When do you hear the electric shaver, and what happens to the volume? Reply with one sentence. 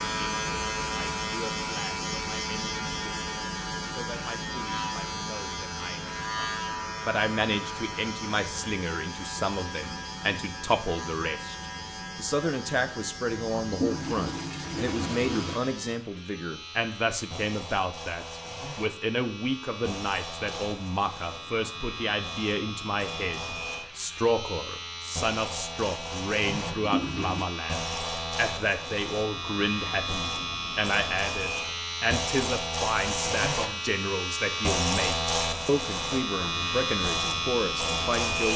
You can hear the electric shaver from 0.0 to 38.5 s, getting quieter then louder.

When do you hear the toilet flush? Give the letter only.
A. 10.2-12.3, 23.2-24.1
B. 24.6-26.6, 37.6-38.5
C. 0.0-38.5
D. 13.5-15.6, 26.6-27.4
D.